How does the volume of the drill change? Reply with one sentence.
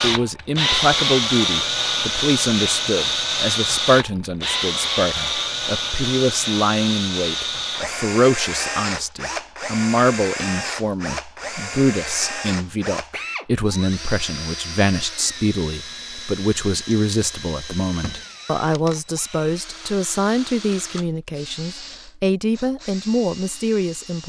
The loudness of the drill goes down.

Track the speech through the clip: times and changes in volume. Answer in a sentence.
The speech can be heard from 0.0 to 24.2 s, at a steady volume.